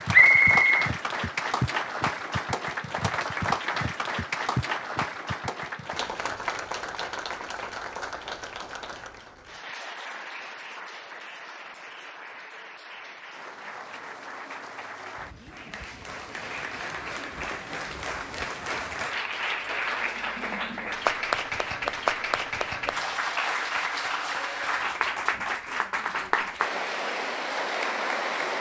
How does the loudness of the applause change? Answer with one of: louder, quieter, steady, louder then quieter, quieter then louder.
quieter then louder.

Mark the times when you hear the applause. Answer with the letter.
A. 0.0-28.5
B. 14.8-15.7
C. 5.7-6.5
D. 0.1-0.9
A.